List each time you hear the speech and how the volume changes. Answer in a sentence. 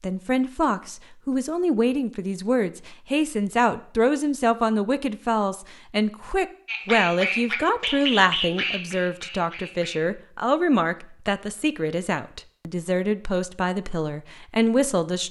You can hear the speech from 0.0 to 15.2 s, at a steady volume.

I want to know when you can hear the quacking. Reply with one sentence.
You can hear the quacking from 6.7 to 10.1 s.